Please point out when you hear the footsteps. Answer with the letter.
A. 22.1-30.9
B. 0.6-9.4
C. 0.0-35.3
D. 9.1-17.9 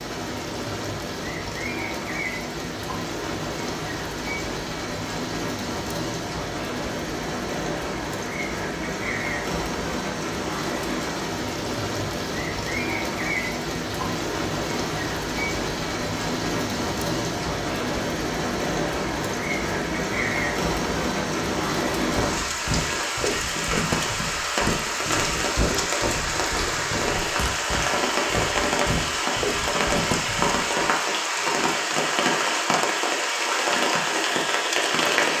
A.